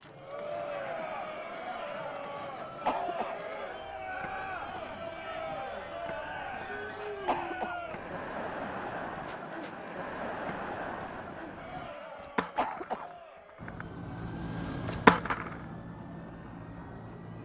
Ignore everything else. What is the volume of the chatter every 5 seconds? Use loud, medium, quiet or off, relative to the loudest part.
loud, loud, loud, quiet.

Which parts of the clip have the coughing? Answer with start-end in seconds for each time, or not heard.
2.9-3.4, 7.2-7.8, 12.6-13.1.